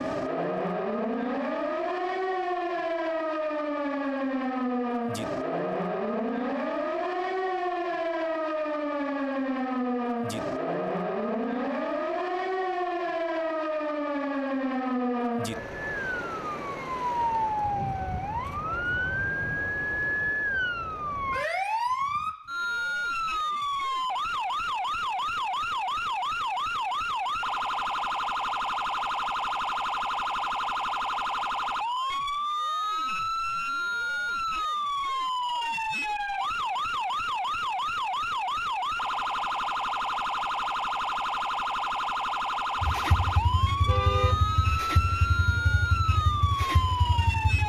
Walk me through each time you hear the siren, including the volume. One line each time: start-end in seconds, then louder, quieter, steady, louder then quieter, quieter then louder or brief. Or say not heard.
0.0-47.6 steady.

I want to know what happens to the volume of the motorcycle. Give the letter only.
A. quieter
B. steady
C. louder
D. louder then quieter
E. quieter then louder
B.